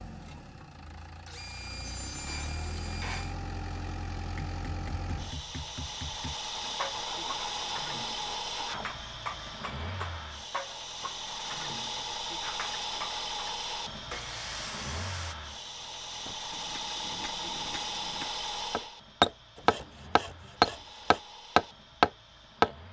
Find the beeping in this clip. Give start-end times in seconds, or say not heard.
not heard.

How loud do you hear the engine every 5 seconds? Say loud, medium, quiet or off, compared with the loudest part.
medium, loud, loud, loud, quiet.